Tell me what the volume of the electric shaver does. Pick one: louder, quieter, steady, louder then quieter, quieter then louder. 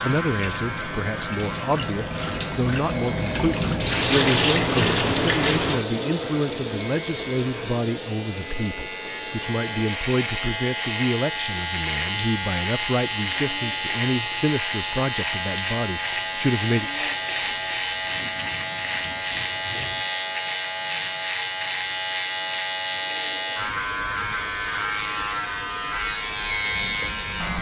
louder.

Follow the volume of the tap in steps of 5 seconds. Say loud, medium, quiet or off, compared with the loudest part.
loud, loud, quiet, quiet, quiet, quiet.